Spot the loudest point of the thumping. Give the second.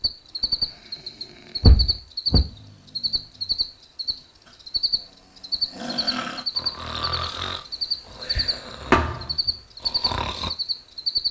9 s.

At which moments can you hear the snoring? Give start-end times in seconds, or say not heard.
0.2-10.5.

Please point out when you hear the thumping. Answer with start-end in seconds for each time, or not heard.
1.6-2.5, 8.9-9.3.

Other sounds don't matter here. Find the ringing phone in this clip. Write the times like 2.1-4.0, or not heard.
not heard.